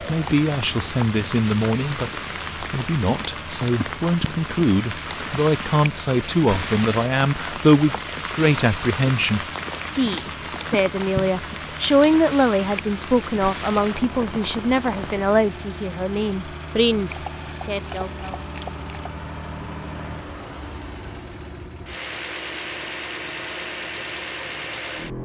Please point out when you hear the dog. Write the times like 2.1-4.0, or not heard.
17.1-19.1.